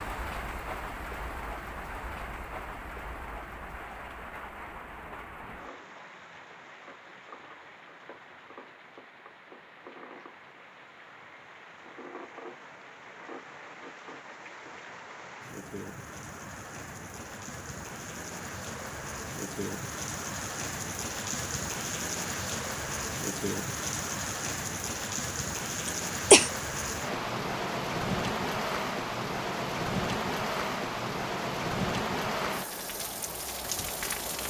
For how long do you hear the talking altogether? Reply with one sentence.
The talking can't be heard in this clip.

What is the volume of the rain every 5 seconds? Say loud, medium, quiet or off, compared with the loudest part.
medium, quiet, quiet, medium, loud, loud, loud.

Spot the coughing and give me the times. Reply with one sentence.
You can hear the coughing from 25.9 to 26.5 s.